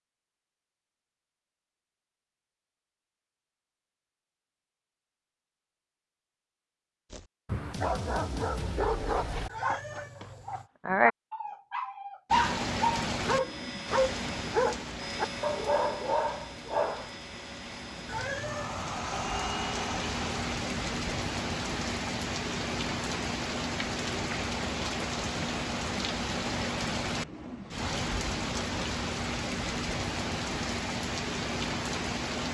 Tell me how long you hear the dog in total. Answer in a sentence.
The dog can be heard for 10 seconds in total.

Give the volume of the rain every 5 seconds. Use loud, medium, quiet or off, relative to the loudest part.
off, off, loud, medium, loud, loud, loud.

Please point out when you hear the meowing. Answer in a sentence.
You can hear the meowing from 9.4 to 10.7 s and from 18.1 to 18.9 s.